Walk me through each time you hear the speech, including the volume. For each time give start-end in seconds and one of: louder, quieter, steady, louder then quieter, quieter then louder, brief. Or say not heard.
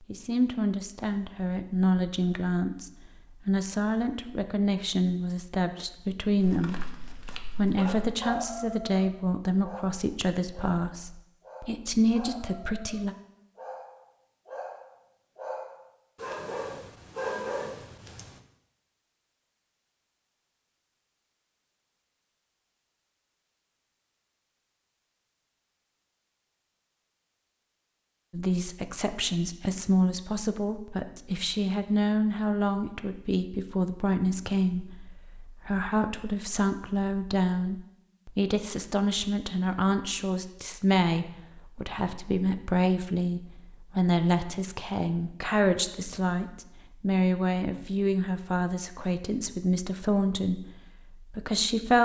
0.1-13.2 steady
28.3-52.0 steady.